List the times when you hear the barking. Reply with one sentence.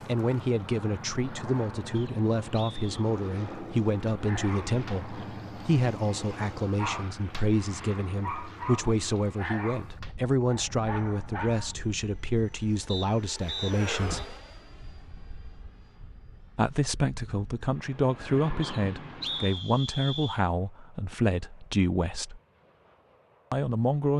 The barking can be heard from 4.2 to 7.5 s and from 8.2 to 11.8 s.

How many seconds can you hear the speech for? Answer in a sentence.
You can hear the speech for 21 seconds altogether.